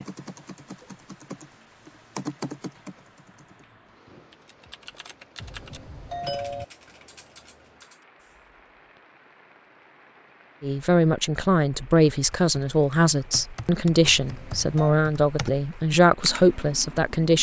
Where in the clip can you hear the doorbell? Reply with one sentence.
You can hear the doorbell from 5.4 to 6.7 s and from 14.1 to 14.9 s.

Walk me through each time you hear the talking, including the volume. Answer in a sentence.
The talking can be heard from 10.6 to 17.3 s, at a steady volume.